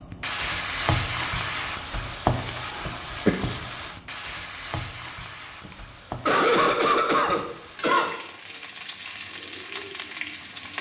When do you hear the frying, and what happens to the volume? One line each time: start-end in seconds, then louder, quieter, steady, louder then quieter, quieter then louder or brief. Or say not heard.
0.0-10.7 quieter.